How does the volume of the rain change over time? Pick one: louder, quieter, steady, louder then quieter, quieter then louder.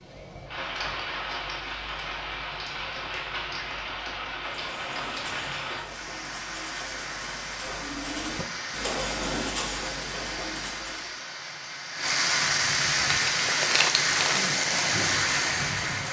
louder.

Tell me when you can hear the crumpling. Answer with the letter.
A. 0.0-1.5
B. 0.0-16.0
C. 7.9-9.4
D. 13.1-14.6
D.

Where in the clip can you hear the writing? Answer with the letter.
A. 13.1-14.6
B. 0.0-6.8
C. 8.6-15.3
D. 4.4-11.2
D.